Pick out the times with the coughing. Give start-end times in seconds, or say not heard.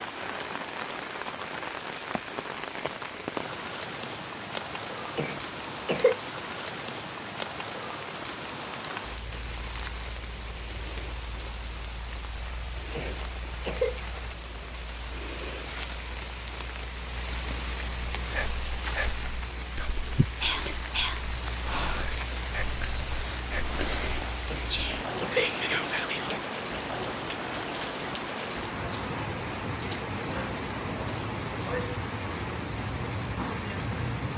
5.2-6.2, 12.9-14.0, 24.4-26.4.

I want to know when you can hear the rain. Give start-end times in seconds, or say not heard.
0.0-34.3.